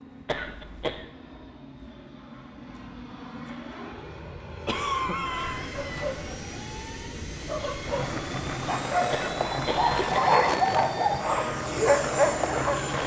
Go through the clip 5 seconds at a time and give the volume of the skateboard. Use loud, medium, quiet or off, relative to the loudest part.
off, loud, loud.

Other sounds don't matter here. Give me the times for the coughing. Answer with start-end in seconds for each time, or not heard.
0.2-1.1, 4.7-6.0, 9.1-10.2.